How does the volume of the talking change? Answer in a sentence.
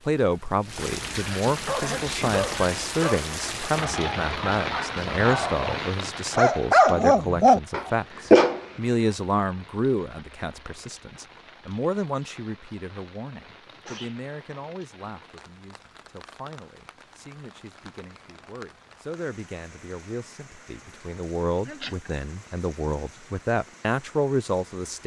The volume of the talking goes down, then up.